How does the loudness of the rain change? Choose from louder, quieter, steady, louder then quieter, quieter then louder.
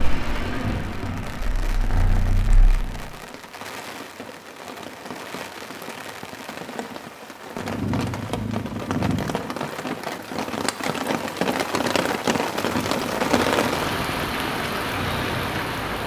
louder.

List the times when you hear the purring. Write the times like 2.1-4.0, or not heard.
0.0-3.1, 7.5-9.4, 12.6-16.0.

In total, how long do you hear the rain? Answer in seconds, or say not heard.
16 s.